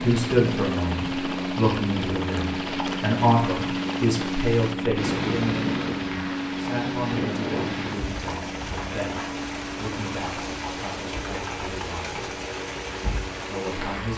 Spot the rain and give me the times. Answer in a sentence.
You can hear the rain from 0.0 to 14.1 s.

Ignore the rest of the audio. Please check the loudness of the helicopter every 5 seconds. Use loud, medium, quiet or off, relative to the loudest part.
loud, loud, medium.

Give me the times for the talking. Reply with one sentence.
The talking can be heard from 0.0 to 12.2 s and from 13.4 to 14.1 s.